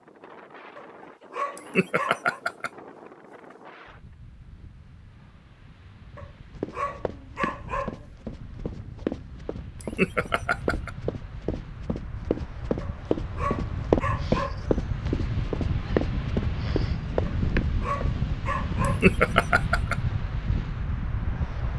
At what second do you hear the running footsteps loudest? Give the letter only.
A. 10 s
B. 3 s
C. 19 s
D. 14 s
D.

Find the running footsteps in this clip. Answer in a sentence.
The running footsteps can be heard from 6.5 to 18.1 s.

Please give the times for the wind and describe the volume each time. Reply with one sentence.
You can hear the wind from 0.0 to 21.7 s, getting louder.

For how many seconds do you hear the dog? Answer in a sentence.
The dog can be heard for 7 seconds in total.